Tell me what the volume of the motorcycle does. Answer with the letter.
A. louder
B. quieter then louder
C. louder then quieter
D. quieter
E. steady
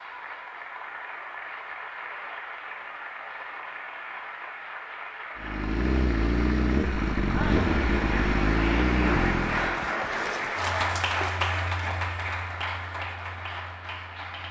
E.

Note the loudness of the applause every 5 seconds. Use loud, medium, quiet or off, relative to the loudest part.
medium, loud, loud.